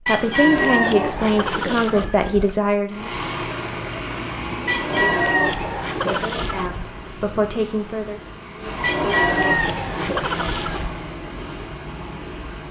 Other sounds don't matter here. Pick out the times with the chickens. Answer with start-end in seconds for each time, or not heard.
0.1-2.0, 4.7-6.7, 8.8-10.8.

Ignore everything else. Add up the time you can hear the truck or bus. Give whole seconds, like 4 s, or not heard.
10 s.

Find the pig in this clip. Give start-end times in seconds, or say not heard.
0.3-2.6, 4.7-7.0, 8.8-10.8.